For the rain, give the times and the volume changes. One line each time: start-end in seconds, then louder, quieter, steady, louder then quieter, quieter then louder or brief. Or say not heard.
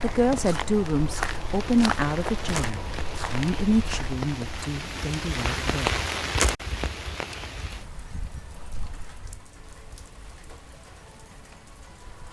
0.1-12.2 louder then quieter.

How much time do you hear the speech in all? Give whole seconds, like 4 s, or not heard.
6 s.